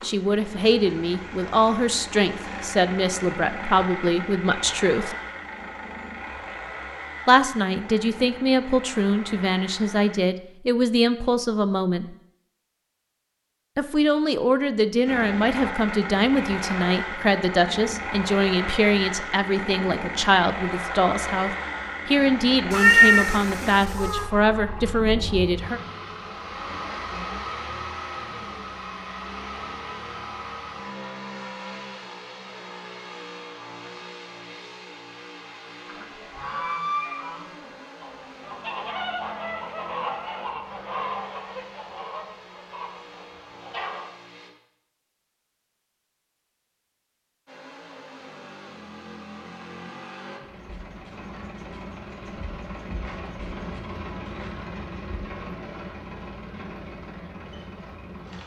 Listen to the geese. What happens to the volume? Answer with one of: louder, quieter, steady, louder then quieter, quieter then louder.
quieter.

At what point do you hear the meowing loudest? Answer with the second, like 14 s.
23 s.